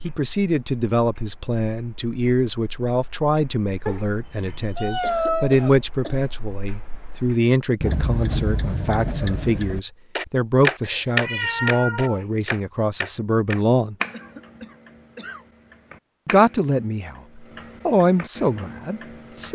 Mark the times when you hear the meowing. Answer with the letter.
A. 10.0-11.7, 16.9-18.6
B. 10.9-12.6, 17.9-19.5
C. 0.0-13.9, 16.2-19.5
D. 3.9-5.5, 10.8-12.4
D.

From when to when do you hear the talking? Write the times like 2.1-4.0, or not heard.
0.0-13.9, 16.2-19.5.